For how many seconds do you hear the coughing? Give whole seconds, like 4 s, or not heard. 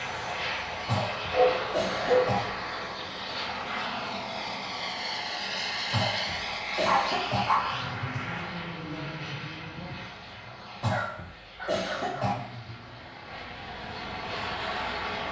5 s.